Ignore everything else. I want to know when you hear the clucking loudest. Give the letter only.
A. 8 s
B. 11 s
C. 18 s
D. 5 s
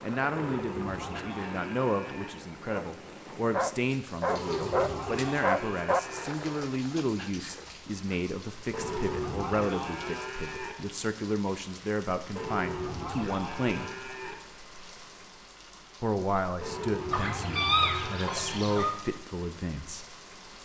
C.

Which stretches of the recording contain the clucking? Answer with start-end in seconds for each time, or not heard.
4.3-5.4, 17.1-18.9.